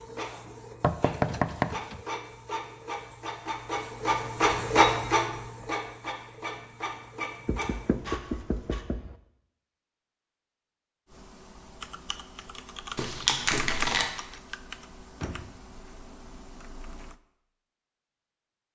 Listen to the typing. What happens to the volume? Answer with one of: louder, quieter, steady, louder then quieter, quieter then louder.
louder then quieter.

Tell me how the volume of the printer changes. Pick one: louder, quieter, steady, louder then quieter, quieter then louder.
louder then quieter.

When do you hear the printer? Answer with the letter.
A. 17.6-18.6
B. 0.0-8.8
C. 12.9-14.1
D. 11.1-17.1
B.